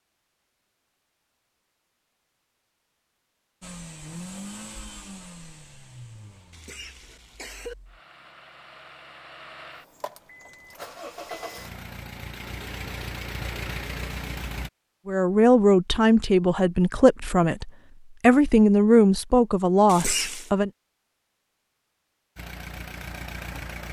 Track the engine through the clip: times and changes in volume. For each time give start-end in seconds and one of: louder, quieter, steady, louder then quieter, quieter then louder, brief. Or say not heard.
3.6-14.7 quieter then louder
22.4-23.8 brief.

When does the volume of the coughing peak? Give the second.
20 s.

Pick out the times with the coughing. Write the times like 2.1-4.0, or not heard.
6.5-7.8, 19.9-20.5.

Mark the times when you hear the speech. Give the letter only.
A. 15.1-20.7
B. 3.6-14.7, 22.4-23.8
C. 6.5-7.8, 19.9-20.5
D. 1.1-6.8
A.